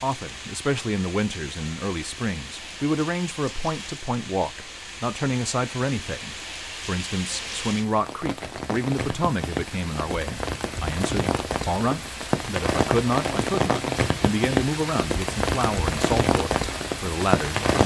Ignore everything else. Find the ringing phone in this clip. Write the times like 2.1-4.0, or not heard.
not heard.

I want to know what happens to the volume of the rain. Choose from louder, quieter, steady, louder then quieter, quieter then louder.
louder.